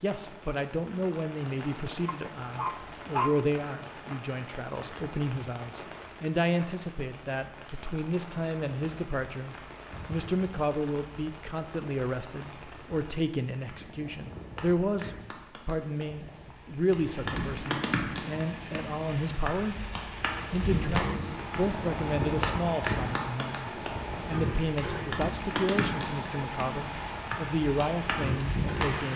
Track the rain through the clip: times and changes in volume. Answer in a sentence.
You can hear the rain from 0.0 to 29.1 s, getting louder.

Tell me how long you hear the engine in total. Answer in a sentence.
The engine can be heard for 9 seconds in total.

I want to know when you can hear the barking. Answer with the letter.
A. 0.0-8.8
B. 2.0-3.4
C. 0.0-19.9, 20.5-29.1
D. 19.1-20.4
B.